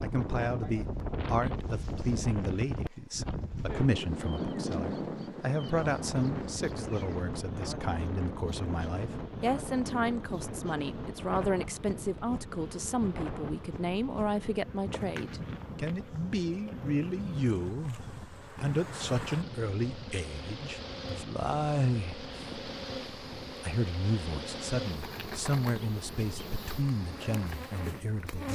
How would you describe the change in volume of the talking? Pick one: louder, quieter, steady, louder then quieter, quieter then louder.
steady.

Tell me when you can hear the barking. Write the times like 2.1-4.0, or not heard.
not heard.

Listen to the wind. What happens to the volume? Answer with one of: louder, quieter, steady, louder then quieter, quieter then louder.
quieter.